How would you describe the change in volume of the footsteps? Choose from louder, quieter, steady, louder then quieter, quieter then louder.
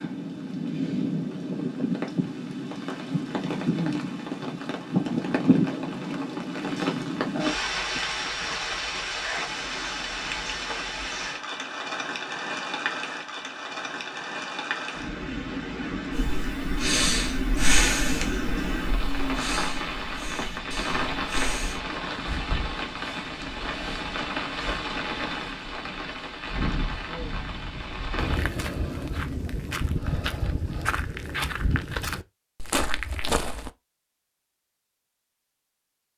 steady.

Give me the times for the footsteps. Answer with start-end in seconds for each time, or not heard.
28.1-33.7.